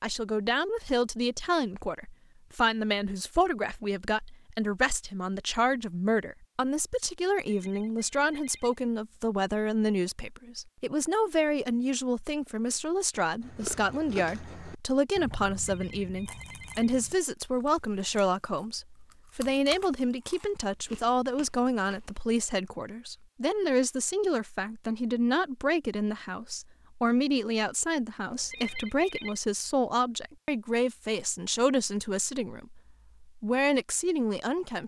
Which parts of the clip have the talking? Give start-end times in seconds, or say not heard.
0.0-34.8.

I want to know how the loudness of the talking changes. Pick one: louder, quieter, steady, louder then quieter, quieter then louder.
steady.